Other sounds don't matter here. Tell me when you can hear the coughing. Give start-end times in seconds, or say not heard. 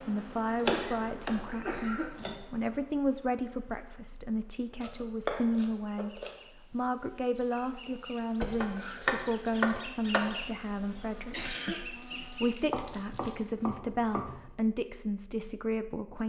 0.7-2.2, 8.4-9.0, 11.3-13.3.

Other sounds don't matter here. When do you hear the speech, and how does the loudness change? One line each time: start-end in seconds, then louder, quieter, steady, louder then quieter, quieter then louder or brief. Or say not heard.
0.1-16.2 steady.